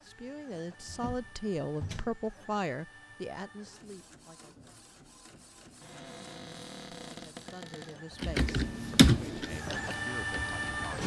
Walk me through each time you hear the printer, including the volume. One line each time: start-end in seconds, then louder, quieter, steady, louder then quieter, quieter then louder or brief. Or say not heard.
0.0-11.0 louder.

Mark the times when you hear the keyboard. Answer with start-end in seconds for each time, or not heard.
8.2-10.9.